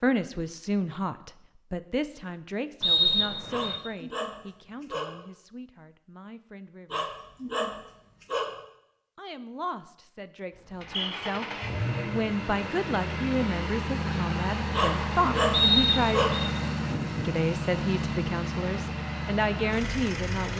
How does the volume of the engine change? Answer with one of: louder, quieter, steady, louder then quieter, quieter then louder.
steady.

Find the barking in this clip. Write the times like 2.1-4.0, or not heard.
3.5-5.2, 6.9-8.6, 14.7-16.4.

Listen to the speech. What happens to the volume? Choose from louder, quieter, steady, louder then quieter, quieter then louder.
quieter then louder.